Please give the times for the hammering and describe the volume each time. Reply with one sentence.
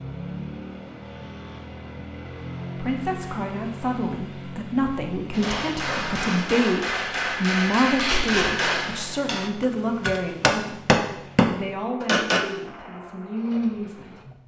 The hammering can be heard from 5.3 to 12.4 s, getting louder.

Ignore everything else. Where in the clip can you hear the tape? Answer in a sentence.
The tape can be heard from 8.0 to 8.5 s.